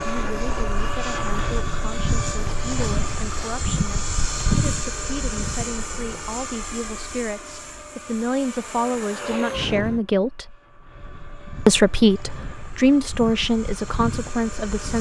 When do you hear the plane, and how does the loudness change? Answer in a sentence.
You can hear the plane from 0.0 to 14.9 s, getting quieter.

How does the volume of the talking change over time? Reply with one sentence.
The volume of the talking goes up.